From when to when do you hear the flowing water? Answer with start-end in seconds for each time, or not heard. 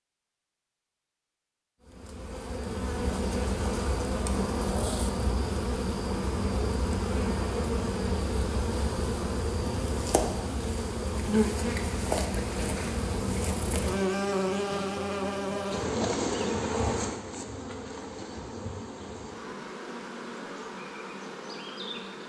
not heard.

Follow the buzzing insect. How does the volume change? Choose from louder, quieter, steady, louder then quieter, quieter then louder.
quieter.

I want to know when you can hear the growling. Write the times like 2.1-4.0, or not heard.
4.3-5.0.